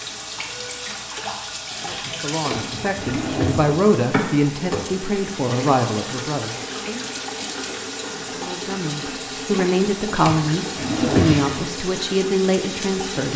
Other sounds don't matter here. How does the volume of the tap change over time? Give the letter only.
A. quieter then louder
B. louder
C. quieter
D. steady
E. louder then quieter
D.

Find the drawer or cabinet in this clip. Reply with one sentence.
The drawer or cabinet can be heard from 2.5 to 3.8 s and from 10.2 to 11.5 s.